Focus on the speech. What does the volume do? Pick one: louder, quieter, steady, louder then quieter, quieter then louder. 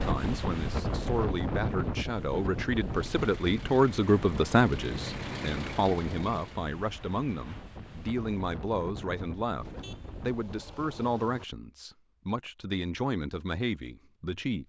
louder then quieter.